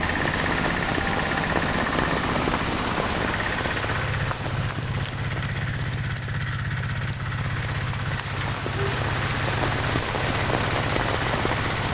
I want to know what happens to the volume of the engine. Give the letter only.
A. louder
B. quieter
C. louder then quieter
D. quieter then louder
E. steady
E.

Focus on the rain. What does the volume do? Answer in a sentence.
The volume of the rain goes down, then up.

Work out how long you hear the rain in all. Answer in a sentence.
The rain can be heard for 12 seconds in total.